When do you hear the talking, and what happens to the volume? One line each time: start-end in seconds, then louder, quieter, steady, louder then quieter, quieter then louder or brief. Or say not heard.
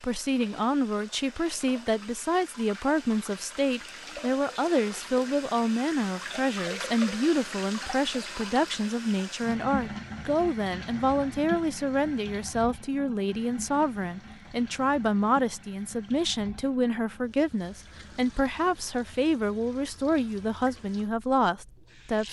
0.0-22.2 steady.